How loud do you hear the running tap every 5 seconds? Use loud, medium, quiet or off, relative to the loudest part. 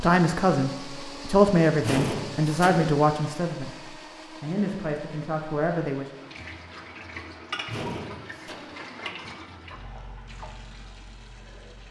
off, loud, medium.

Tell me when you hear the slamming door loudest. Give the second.
2 s.